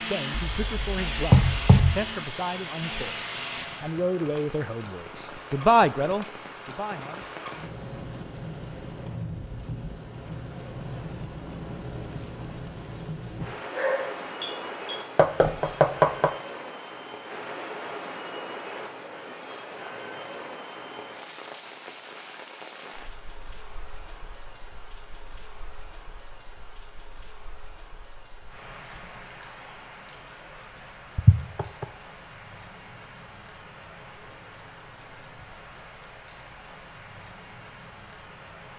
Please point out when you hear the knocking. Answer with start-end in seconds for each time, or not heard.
0.3-2.0, 15.2-16.3, 31.1-31.9.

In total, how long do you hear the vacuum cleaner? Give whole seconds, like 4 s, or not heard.
4 s.